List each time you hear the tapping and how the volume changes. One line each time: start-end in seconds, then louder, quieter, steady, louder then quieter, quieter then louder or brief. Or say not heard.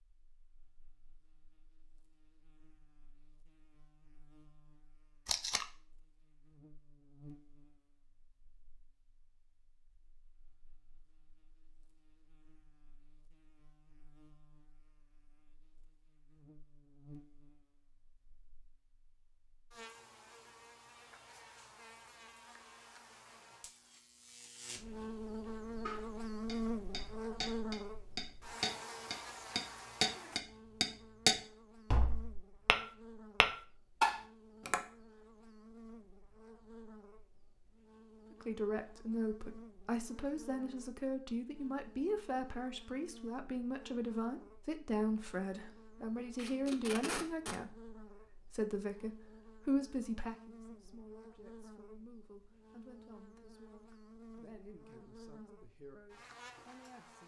25.9-32.8 louder
33.4-34.8 brief.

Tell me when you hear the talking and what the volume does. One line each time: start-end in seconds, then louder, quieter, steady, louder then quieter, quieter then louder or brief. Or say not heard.
38.3-57.2 quieter.